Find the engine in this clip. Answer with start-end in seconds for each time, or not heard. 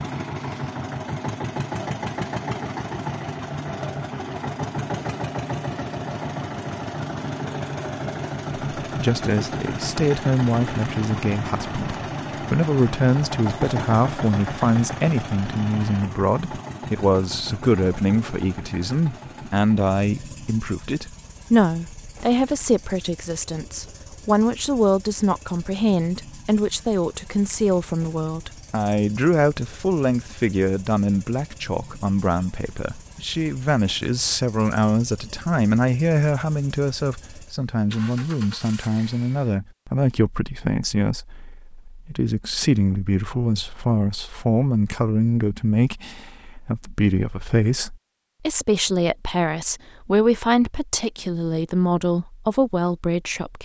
0.0-39.5.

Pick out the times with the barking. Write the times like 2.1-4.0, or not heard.
not heard.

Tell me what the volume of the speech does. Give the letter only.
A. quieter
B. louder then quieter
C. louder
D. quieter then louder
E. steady
E.